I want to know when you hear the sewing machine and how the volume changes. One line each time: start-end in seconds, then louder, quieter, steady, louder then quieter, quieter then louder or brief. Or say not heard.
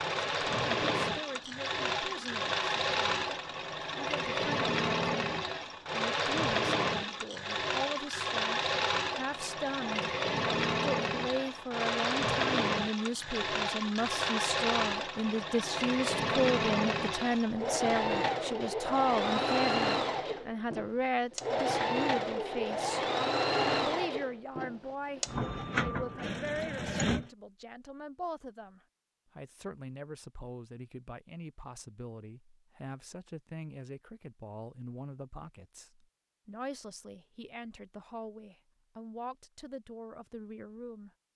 0.0-27.3 steady.